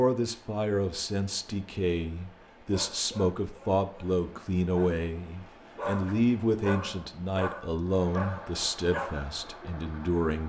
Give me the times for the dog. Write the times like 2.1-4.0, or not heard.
2.7-9.3.